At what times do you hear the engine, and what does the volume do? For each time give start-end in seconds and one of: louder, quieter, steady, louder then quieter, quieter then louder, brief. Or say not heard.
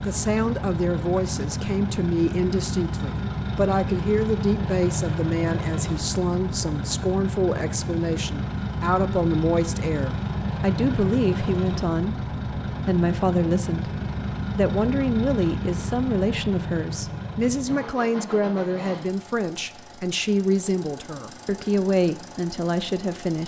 0.0-23.4 quieter.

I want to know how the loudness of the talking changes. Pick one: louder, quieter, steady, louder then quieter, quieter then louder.
steady.